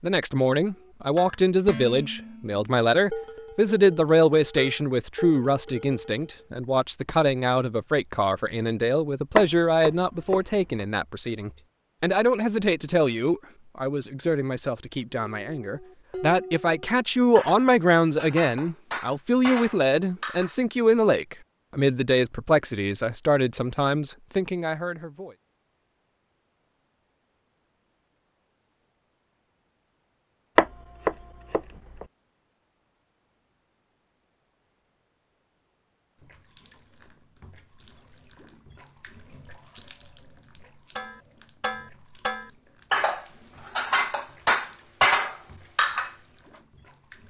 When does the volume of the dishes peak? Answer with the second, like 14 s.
45 s.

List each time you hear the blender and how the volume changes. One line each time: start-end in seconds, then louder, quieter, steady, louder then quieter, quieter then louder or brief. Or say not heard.
not heard.